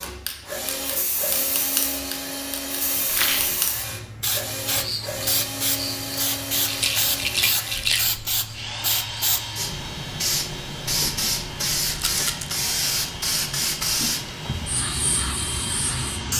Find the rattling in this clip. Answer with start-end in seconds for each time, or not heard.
3.0-3.5, 6.7-8.1, 11.9-12.6.